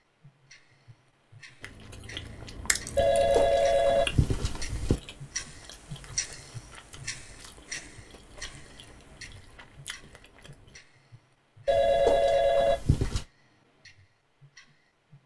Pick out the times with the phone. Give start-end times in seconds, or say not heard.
3.0-5.0, 11.7-13.2.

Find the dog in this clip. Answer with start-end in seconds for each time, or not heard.
not heard.